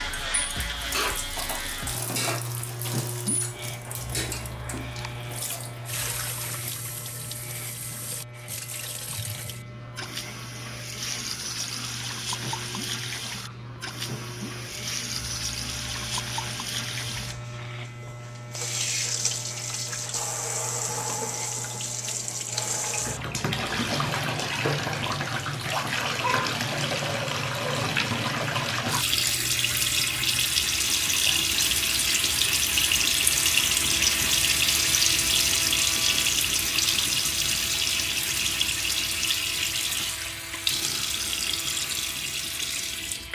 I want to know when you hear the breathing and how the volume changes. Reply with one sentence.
You can't hear the breathing here.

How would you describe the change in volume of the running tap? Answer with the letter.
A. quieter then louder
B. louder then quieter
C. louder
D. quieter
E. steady
C.